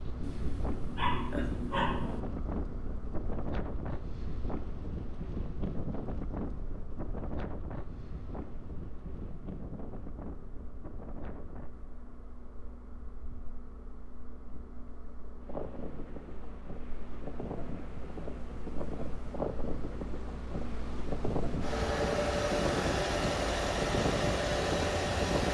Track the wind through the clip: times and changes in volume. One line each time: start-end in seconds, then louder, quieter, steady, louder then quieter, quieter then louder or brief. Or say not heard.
0.0-25.4 quieter then louder.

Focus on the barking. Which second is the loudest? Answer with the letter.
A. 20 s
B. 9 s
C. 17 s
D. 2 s
D.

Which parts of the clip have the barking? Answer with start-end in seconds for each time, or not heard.
0.2-2.2.